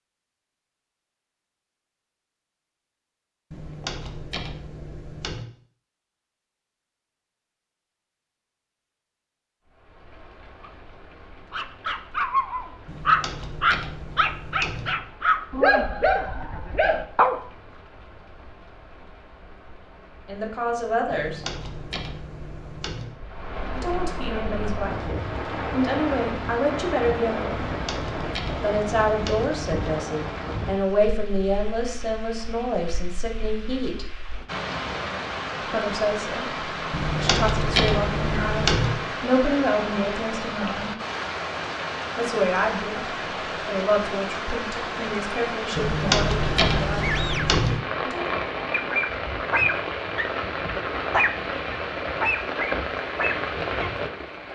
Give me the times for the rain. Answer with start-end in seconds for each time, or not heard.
9.7-54.4.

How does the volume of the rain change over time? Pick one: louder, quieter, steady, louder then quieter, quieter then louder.
louder.